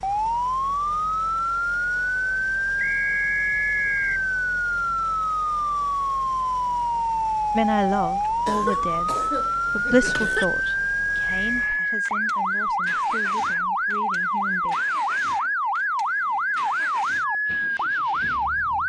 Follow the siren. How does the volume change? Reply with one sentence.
The volume of the siren stays about the same.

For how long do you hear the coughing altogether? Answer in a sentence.
You can hear the coughing for 2 seconds altogether.